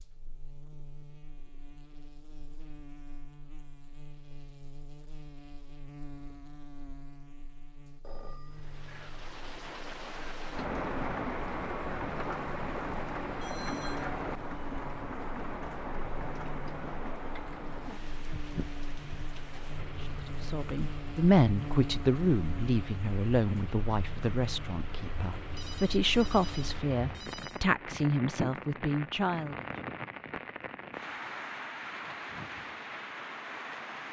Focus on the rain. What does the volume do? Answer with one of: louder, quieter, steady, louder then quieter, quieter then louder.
quieter then louder.